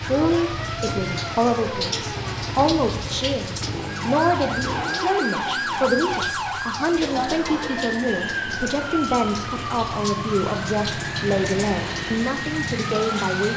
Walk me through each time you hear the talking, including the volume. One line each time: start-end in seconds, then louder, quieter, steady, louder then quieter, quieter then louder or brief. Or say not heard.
0.0-13.5 steady.